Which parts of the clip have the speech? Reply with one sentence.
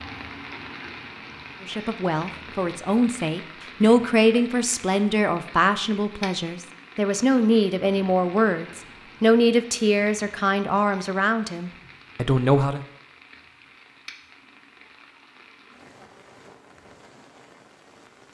You can hear the speech from 1.6 to 12.8 s.